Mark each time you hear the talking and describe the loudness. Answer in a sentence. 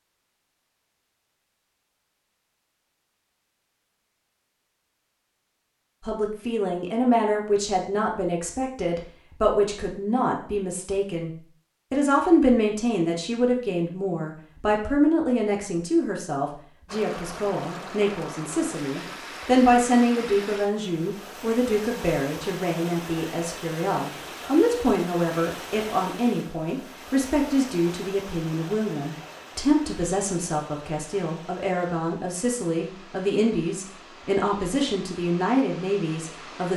The talking can be heard from 6.0 to 36.7 s, at a steady volume.